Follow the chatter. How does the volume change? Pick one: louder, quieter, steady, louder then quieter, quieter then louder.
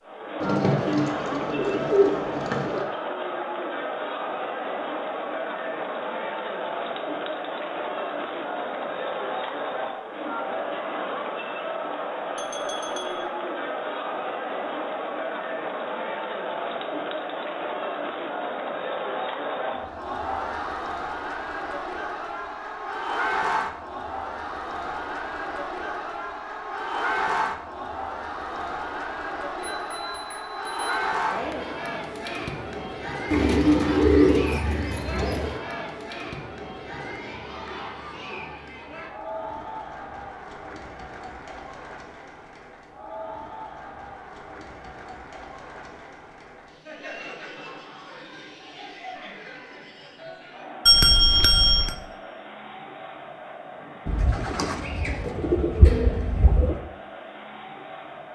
quieter.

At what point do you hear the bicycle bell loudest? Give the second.
51 s.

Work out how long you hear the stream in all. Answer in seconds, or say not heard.
not heard.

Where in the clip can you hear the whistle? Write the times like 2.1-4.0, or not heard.
not heard.